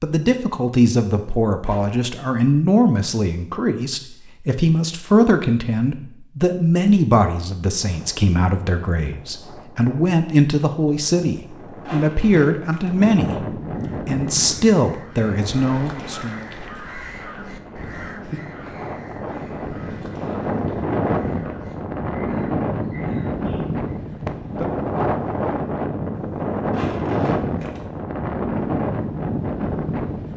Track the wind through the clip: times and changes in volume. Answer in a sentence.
The wind can be heard from 7.8 to 30.3 s, getting louder.